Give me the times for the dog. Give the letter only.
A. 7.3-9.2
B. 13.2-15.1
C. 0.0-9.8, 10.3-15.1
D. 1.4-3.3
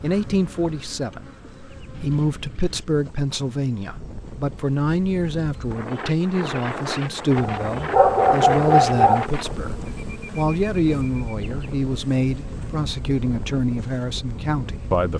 A.